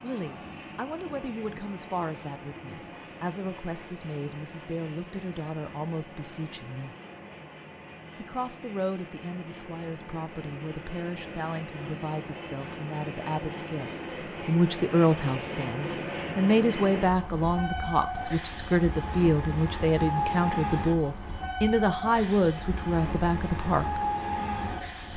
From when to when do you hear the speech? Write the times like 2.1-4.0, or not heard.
0.0-7.0, 8.2-24.1.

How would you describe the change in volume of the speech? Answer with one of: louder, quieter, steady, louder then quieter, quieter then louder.
louder.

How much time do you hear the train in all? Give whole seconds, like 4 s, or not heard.
25 s.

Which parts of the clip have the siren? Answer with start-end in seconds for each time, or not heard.
not heard.